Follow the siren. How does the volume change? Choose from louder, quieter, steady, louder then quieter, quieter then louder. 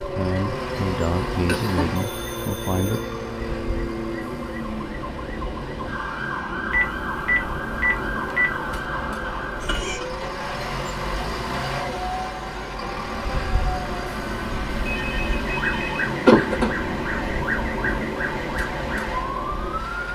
steady.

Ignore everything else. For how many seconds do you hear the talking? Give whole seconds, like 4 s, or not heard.
3 s.